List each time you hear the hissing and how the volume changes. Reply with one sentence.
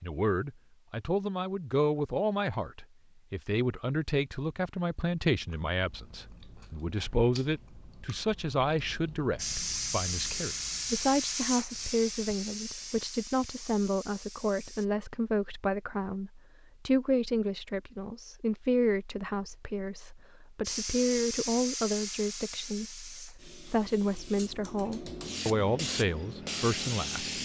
You can hear the hissing from 9.3 to 14.8 s, getting quieter; and from 20.6 to 27.4 s, getting quieter then louder.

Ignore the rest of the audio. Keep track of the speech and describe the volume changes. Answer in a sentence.
The loudness of the speech stays about the same.